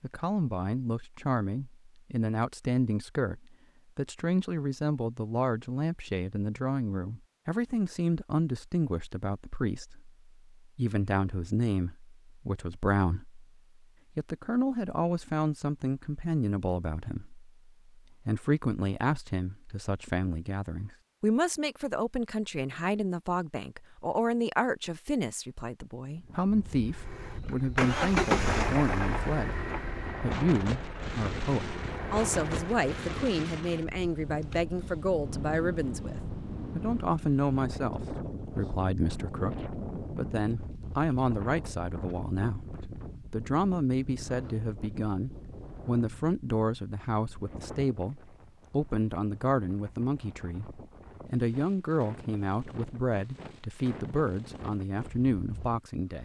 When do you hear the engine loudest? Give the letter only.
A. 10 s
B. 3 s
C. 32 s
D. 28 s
D.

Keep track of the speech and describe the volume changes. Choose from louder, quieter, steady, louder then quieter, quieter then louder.
steady.